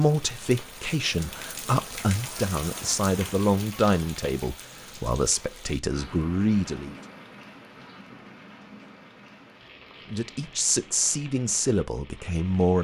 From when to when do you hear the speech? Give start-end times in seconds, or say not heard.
0.0-7.0, 10.1-12.7.